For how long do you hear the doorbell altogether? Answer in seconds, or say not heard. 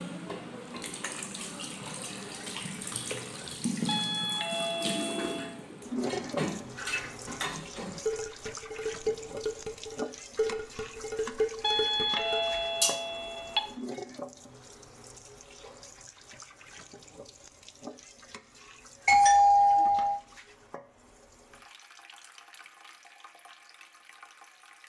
5 s.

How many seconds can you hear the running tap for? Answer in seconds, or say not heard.
25 s.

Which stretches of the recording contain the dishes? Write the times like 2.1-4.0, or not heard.
5.2-12.9.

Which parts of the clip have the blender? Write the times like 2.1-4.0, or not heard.
not heard.